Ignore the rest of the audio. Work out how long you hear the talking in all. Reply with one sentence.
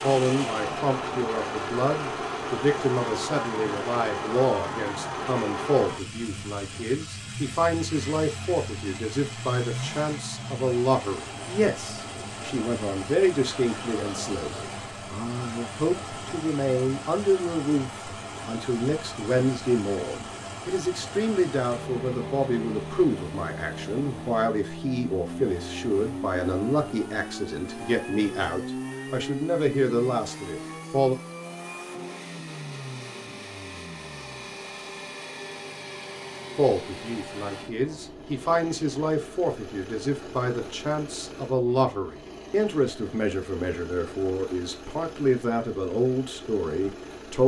You can hear the talking for 42 seconds altogether.